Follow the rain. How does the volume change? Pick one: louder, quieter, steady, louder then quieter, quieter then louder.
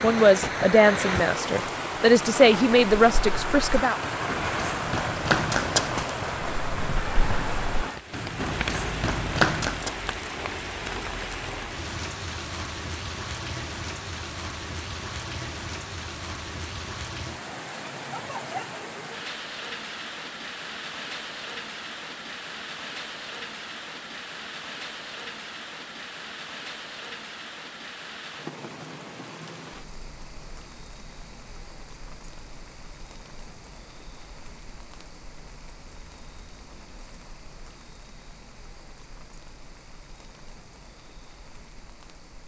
quieter.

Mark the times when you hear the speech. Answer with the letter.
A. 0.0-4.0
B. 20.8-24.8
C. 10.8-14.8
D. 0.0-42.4
A.